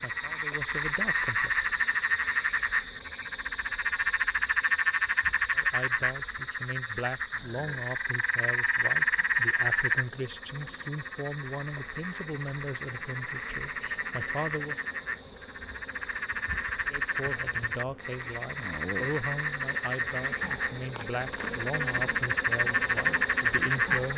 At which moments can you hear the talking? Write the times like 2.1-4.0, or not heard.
0.0-1.5, 5.5-14.8, 16.9-24.1.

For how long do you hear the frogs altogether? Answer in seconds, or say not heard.
24 s.